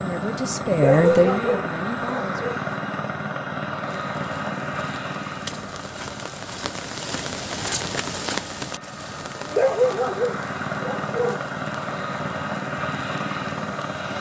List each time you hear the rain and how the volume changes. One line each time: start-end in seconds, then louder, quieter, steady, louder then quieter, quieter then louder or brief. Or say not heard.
3.8-14.1 louder then quieter.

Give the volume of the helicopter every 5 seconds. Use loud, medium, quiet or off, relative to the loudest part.
loud, medium, loud.